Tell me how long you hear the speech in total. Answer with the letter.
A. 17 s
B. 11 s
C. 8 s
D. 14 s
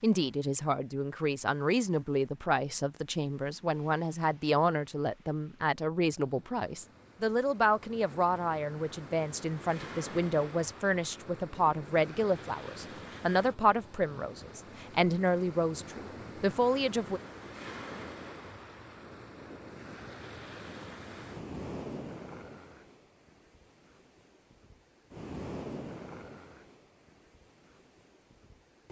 A.